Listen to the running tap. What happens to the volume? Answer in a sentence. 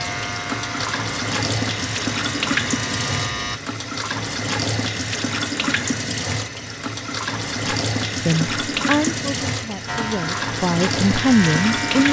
The volume of the running tap stays about the same.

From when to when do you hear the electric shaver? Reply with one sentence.
You can hear the electric shaver from 0.0 to 3.6 s and from 9.8 to 12.0 s.